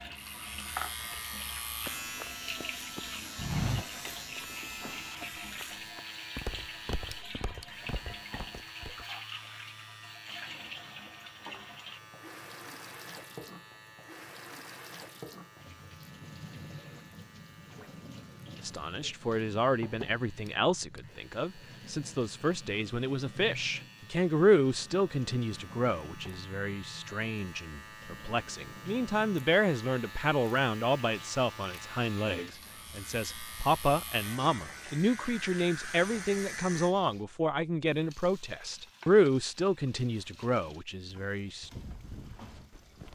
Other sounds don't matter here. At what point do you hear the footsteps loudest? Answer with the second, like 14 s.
4 s.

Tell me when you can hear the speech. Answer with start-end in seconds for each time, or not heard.
18.6-41.7.